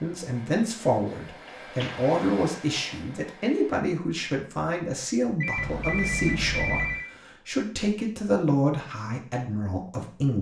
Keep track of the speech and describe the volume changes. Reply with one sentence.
The loudness of the speech stays about the same.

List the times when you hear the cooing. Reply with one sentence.
The cooing can't be heard in this clip.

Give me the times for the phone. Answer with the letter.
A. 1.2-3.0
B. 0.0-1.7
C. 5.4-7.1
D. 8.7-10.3
C.